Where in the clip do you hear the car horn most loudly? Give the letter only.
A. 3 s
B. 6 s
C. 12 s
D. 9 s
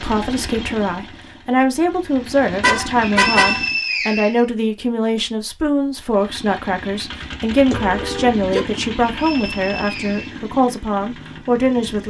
A.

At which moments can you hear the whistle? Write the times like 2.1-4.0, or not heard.
3.1-4.5, 9.1-10.3.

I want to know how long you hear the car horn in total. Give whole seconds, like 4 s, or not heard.
2 s.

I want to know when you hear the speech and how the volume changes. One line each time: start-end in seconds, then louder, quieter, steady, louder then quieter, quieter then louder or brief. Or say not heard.
0.0-12.0 steady.